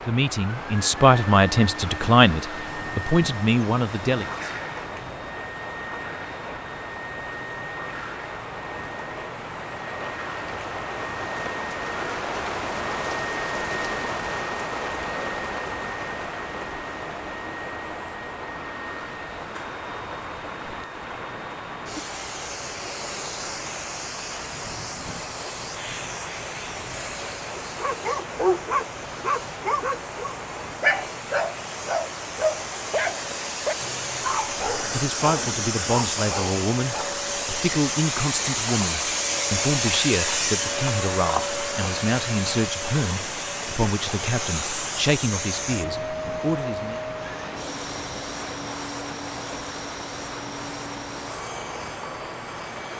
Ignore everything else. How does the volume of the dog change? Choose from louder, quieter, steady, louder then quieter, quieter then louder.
quieter.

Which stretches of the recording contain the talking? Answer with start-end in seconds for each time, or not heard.
0.1-4.5, 34.8-47.0.